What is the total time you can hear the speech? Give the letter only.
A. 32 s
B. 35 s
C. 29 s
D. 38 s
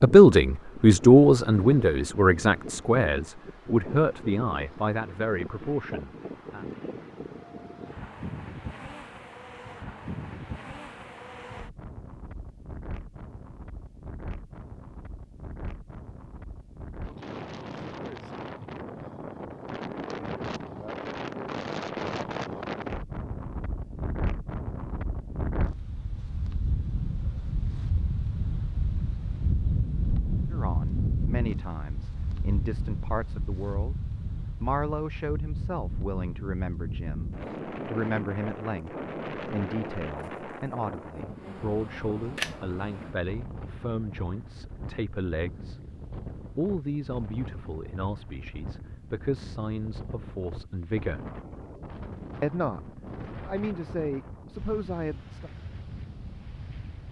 C.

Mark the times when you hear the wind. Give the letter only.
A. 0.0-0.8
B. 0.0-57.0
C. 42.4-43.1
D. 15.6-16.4
B.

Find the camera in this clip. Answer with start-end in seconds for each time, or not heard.
42.4-43.1.